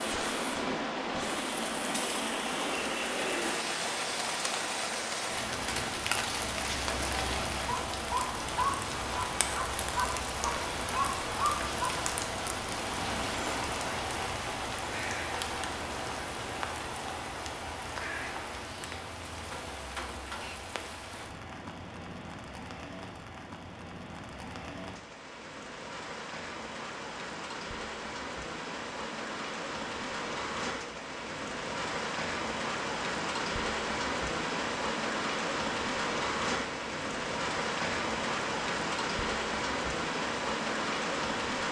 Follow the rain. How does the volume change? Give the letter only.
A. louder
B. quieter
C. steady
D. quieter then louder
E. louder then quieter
D.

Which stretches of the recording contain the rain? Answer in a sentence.
You can hear the rain from 0.0 to 41.6 s.